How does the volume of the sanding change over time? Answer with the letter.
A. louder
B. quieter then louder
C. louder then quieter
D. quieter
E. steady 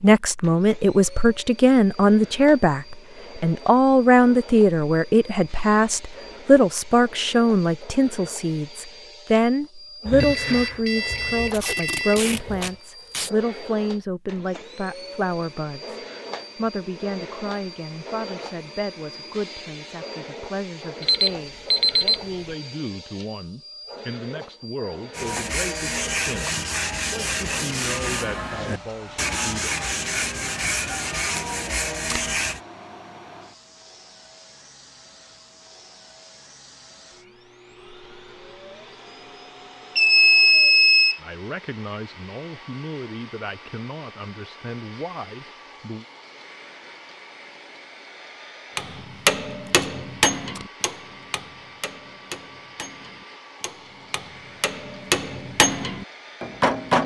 E.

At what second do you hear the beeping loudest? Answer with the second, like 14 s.
40 s.